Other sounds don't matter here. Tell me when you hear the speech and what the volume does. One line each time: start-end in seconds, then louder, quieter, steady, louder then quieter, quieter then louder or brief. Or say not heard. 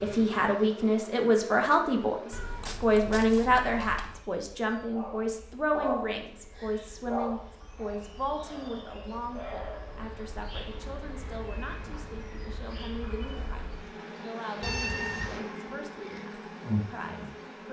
0.0-17.6 quieter.